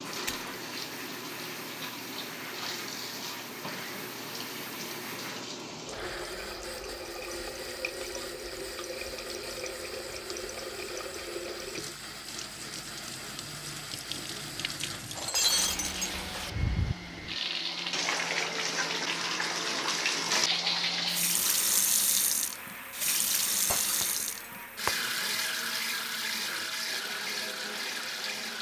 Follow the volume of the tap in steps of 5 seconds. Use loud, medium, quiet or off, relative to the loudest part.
medium, medium, medium, loud, loud, loud.